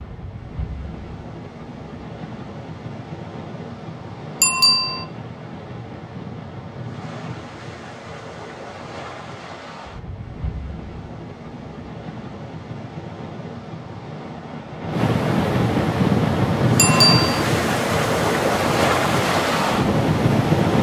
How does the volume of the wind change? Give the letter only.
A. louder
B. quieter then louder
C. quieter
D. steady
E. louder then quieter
A.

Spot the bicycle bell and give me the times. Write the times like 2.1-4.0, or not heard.
4.4-5.0, 16.8-17.4.